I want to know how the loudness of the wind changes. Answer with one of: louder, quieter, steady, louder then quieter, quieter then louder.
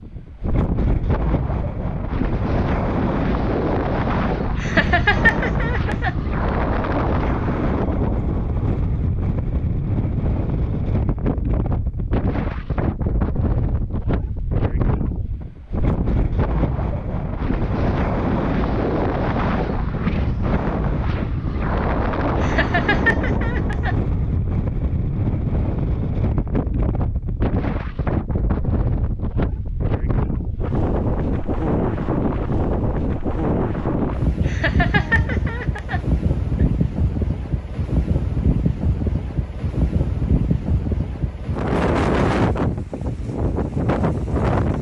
steady.